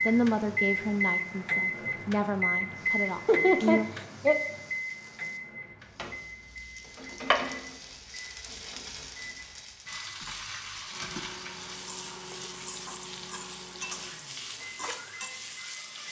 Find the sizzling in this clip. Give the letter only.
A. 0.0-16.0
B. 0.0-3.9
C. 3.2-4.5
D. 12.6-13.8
A.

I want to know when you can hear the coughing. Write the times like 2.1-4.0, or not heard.
3.2-4.5.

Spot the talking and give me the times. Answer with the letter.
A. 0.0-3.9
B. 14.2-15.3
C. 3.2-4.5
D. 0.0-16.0
A.